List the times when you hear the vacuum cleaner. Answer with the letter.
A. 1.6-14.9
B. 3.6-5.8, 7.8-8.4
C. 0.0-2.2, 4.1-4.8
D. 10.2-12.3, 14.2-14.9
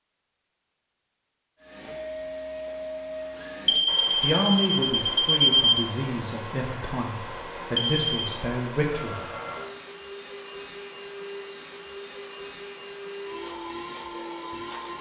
A.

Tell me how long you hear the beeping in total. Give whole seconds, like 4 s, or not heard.
3 s.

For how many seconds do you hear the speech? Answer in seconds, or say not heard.
5 s.